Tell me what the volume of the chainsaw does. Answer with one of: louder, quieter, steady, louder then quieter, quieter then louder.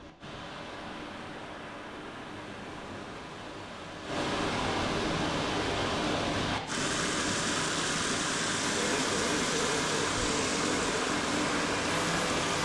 steady.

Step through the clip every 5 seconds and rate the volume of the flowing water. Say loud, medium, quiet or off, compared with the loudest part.
medium, loud, loud.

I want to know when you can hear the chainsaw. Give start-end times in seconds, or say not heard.
8.6-12.6.